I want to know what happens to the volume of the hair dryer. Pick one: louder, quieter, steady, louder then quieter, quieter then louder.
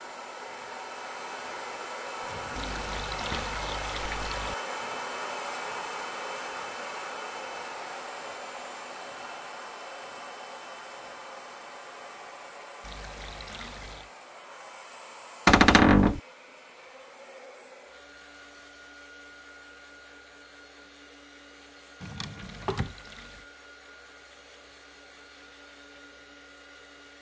quieter.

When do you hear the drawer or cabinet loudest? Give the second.
16 s.